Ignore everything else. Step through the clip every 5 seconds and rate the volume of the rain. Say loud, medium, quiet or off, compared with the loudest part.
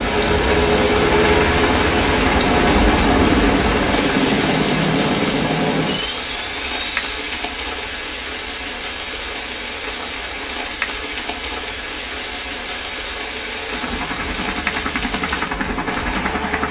loud, medium, medium, medium.